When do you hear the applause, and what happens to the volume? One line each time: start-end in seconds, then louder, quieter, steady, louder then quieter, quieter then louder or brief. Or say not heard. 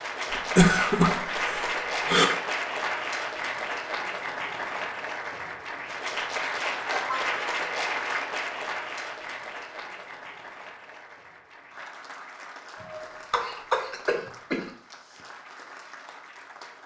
0.0-16.8 quieter.